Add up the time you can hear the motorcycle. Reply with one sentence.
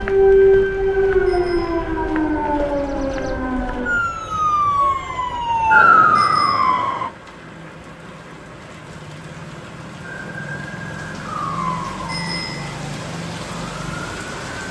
The motorcycle can't be heard in this clip.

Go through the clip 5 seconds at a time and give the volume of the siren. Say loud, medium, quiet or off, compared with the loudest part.
loud, loud, quiet.